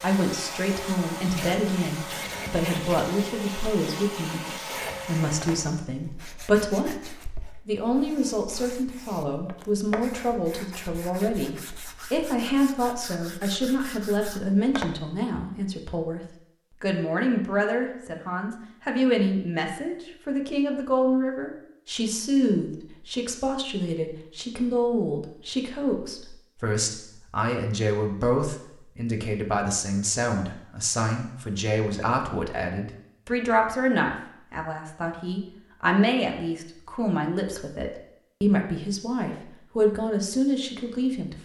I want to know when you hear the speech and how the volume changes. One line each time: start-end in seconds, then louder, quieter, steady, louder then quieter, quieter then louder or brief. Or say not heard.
0.0-41.4 steady.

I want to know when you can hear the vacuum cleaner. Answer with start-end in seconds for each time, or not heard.
0.0-5.8.